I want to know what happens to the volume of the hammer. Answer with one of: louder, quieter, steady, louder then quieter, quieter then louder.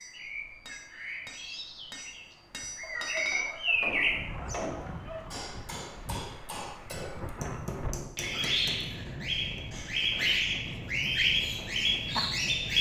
louder.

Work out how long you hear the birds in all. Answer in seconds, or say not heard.
13 s.